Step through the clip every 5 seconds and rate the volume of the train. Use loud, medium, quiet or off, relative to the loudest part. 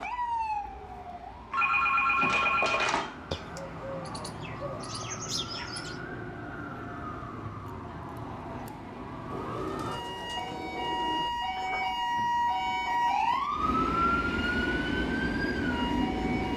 quiet, quiet, medium, loud.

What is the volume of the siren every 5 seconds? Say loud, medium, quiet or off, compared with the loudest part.
medium, medium, loud, medium.